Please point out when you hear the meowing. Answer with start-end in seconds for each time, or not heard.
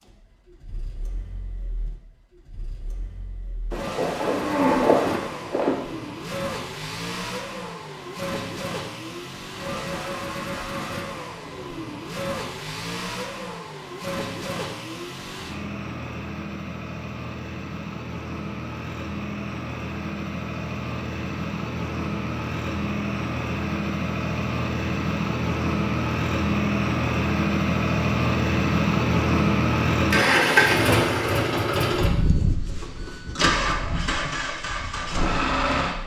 not heard.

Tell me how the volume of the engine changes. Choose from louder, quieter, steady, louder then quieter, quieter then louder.
louder.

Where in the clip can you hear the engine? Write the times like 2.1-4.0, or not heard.
0.0-36.0.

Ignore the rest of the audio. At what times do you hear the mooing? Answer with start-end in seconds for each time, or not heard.
3.7-5.8.